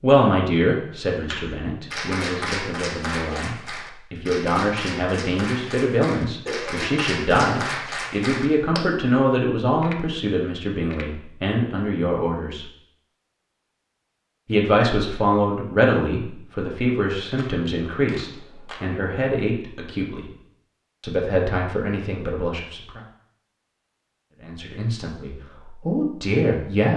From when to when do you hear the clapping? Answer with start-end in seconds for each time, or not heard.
1.2-8.8.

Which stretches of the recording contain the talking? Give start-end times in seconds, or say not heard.
0.0-12.7, 14.4-20.3, 21.0-23.0, 24.4-26.9.